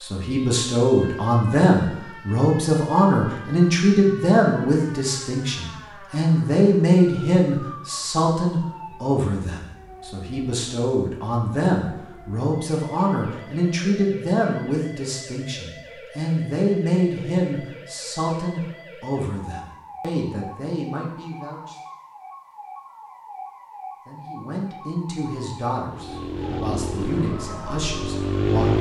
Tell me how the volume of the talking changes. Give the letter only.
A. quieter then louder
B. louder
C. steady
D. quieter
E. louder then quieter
D.